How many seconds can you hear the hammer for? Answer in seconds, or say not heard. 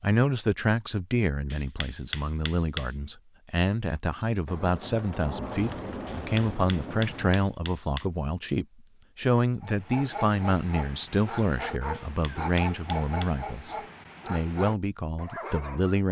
5 s.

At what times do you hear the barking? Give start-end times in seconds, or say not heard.
9.6-16.0.